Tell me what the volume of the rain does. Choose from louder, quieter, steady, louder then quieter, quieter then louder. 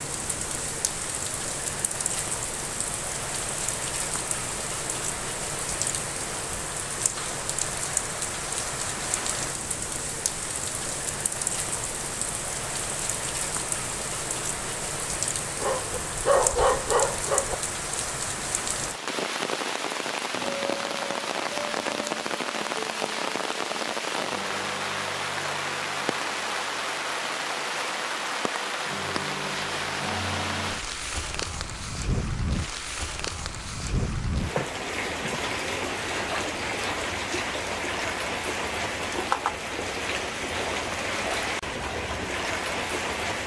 steady.